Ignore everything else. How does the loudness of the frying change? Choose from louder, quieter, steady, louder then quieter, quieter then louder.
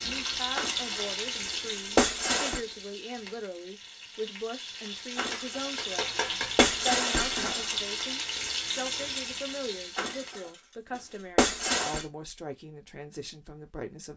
quieter then louder.